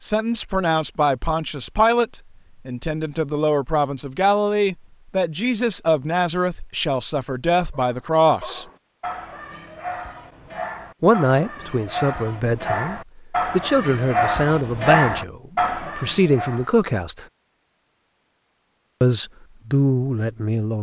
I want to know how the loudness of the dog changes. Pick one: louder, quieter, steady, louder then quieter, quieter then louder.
louder.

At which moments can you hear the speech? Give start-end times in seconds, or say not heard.
0.0-8.7, 11.0-17.2, 19.0-20.7.